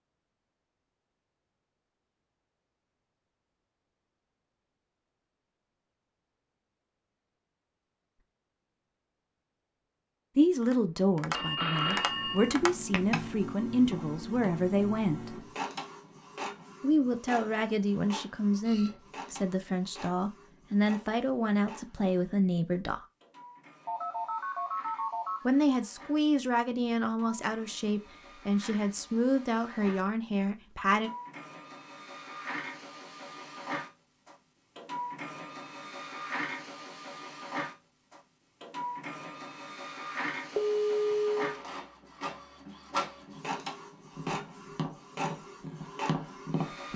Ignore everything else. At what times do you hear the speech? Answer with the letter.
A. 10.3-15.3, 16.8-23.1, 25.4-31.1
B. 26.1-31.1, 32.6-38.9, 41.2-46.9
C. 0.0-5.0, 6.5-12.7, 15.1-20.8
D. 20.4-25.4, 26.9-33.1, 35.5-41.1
A.